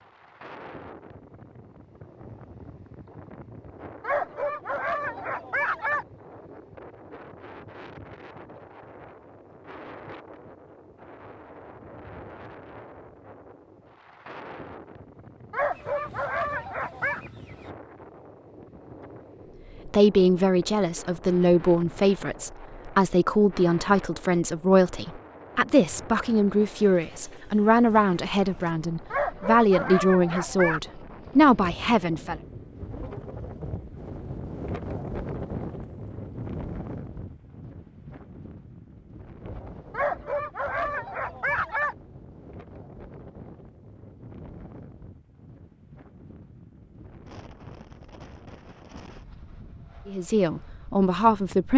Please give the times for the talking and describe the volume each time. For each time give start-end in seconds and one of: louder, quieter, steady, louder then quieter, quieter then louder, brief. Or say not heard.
19.9-32.4 steady
50.0-51.7 brief.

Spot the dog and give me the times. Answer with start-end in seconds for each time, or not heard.
4.0-6.0, 15.5-17.2, 29.1-30.8, 39.9-42.0.